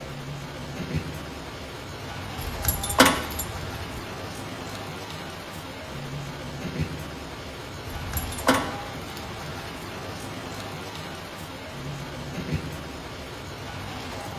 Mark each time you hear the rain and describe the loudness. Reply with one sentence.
The rain can be heard from 0.0 to 14.3 s, at a steady volume.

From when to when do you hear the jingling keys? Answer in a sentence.
The jingling keys can be heard from 2.4 to 4.0 s and from 7.8 to 8.6 s.